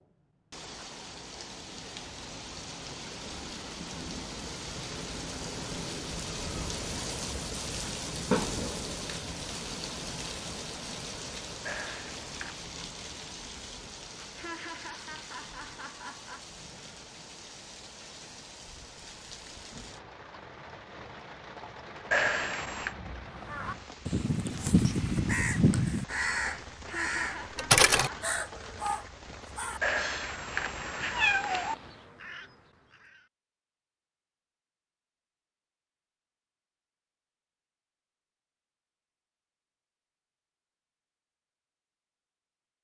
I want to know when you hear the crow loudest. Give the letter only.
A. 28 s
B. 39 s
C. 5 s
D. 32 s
A.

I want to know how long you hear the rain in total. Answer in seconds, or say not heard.
32 s.